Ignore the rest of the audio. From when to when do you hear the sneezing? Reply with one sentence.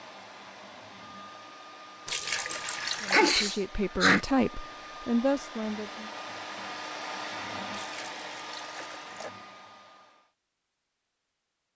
You can hear the sneezing from 2.5 to 4.2 s.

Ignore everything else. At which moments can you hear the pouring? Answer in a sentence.
The pouring can be heard from 2.0 to 3.5 s and from 7.7 to 9.3 s.